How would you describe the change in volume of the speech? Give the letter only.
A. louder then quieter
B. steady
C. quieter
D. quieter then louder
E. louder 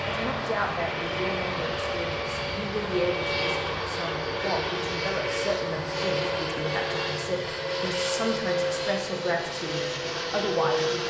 B.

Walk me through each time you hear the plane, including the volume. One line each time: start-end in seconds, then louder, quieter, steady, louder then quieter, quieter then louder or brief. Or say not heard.
0.0-11.0 steady.